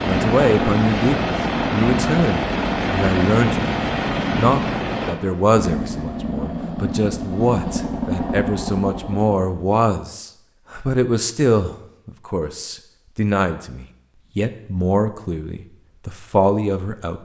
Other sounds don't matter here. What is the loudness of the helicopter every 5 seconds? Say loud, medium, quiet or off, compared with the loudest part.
loud, medium, off, off.